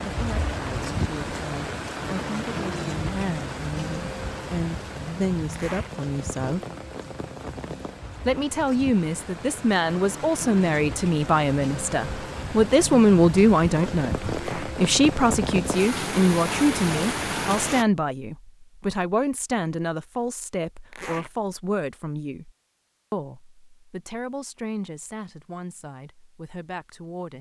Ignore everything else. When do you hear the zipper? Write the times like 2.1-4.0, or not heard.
5.5-5.9, 14.3-14.8, 20.9-21.3.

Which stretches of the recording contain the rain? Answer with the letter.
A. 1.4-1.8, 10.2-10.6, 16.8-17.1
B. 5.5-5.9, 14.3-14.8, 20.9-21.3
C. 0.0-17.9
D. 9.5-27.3
C.